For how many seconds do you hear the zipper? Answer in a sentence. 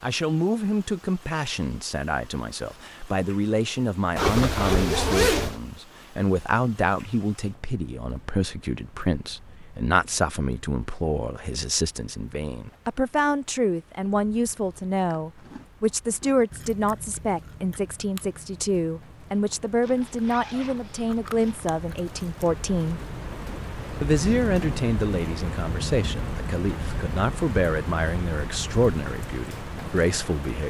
You can hear the zipper for 3 seconds altogether.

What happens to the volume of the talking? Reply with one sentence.
The loudness of the talking stays about the same.